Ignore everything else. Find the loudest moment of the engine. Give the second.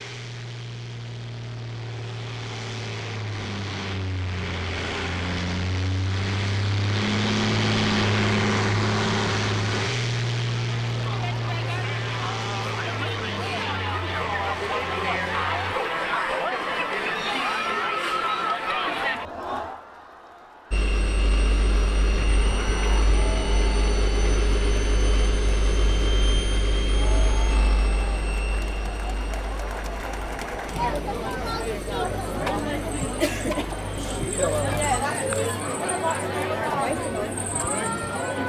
8 s.